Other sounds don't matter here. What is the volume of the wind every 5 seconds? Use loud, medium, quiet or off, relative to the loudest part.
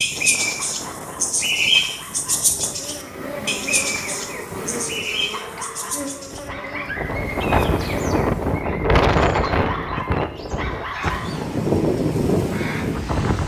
quiet, loud, loud.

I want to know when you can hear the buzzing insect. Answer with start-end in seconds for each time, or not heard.
2.6-8.7.